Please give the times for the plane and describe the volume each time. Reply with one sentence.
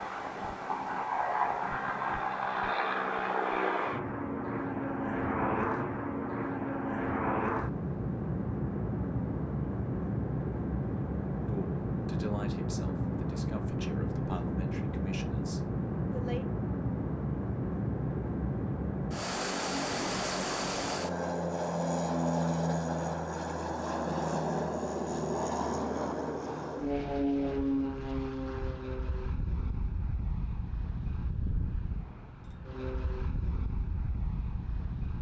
You can hear the plane from 0.0 to 35.1 s, getting quieter.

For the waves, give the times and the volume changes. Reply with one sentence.
You can't hear the waves here.